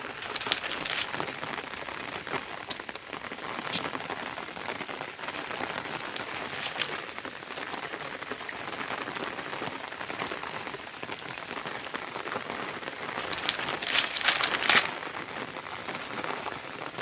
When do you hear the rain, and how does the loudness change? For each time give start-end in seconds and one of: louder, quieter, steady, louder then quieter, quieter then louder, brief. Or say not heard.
0.0-16.9 steady.